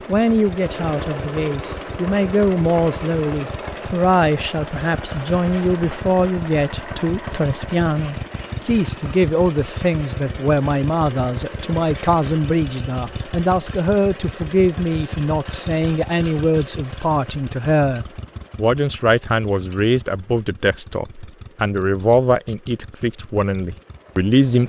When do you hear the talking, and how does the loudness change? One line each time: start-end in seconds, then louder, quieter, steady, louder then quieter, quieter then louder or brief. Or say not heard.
0.1-24.6 steady.